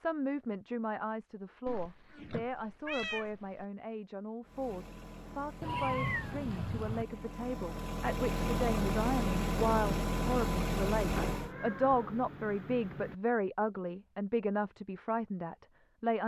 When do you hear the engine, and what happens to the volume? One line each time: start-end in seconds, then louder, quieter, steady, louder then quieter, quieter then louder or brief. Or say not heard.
4.4-11.6 louder.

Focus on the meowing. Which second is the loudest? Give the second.
6 s.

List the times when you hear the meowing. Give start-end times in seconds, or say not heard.
1.6-3.6, 5.6-7.0, 11.2-13.2.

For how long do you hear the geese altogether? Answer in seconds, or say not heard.
not heard.